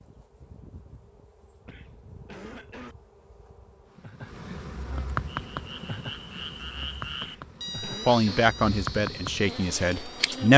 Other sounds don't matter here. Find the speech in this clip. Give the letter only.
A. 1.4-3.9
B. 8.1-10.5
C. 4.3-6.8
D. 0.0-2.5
B.